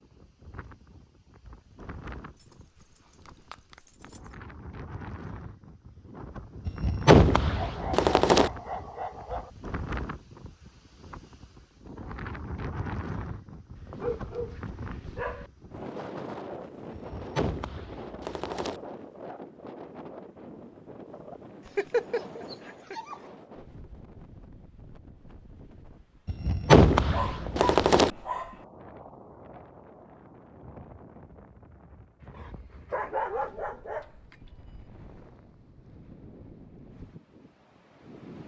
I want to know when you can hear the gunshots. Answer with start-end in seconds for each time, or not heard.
6.7-8.5, 16.9-18.8, 26.2-28.1.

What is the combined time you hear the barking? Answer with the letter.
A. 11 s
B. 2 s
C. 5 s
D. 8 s
A.